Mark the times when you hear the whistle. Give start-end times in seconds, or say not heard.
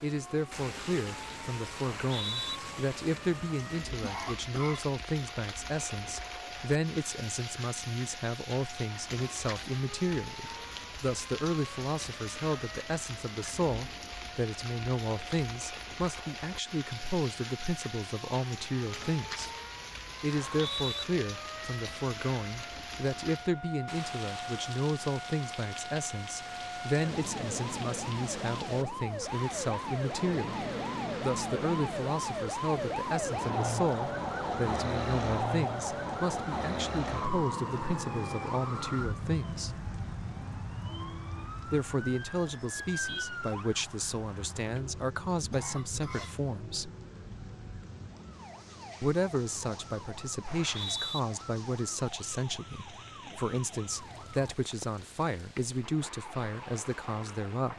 1.8-2.6, 20.3-21.1, 50.5-51.2.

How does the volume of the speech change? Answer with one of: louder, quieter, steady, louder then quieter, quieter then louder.
steady.